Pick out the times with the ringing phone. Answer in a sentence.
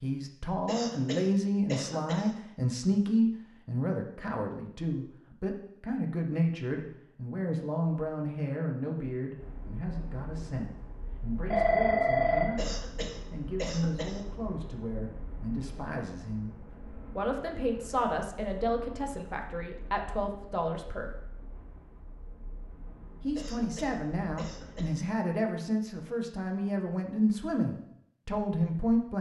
The ringing phone can be heard from 11.5 to 12.8 s.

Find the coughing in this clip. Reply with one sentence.
The coughing can be heard from 0.7 to 2.4 s, from 12.6 to 14.2 s and from 23.4 to 25.0 s.